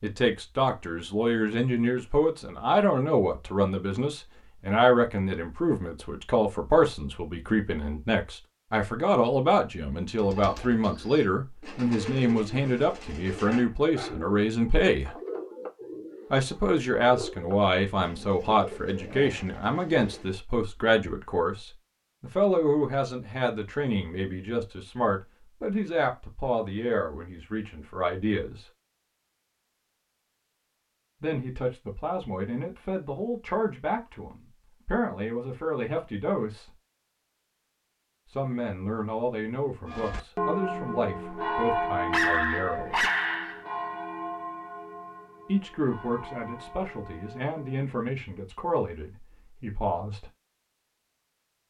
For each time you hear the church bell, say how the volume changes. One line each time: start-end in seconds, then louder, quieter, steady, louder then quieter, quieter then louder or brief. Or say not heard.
39.9-47.9 quieter.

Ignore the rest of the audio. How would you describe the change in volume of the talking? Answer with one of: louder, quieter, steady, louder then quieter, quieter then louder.
quieter.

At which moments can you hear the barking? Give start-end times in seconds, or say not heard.
13.4-14.2, 42.1-43.6.